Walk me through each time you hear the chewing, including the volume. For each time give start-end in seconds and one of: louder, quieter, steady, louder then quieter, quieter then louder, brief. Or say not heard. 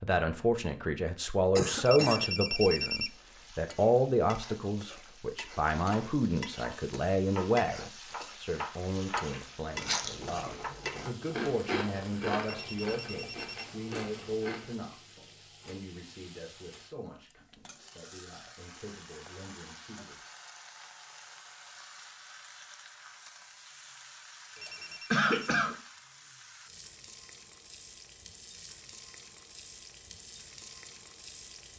9.7-14.8 louder then quieter.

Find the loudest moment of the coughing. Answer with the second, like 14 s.
25 s.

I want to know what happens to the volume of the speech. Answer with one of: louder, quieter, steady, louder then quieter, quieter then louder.
quieter.